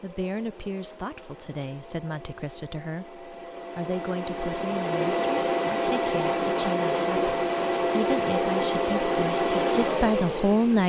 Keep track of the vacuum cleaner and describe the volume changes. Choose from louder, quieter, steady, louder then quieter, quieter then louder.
louder.